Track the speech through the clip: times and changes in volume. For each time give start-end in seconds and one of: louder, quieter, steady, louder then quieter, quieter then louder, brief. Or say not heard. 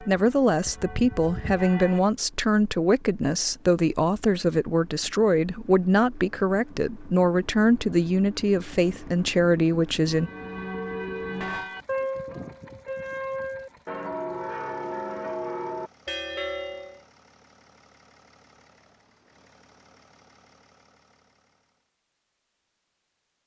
0.0-10.3 steady.